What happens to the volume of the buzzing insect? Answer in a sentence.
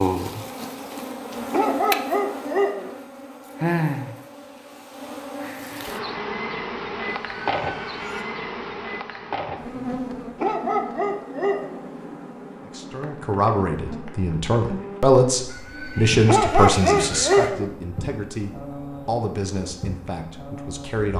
The loudness of the buzzing insect goes down.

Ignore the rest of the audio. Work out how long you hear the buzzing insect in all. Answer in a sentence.
You can hear the buzzing insect for 21 seconds altogether.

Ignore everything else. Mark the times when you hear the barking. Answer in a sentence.
The barking can be heard from 1.5 to 2.9 s, from 10.3 to 11.8 s and from 16.2 to 17.6 s.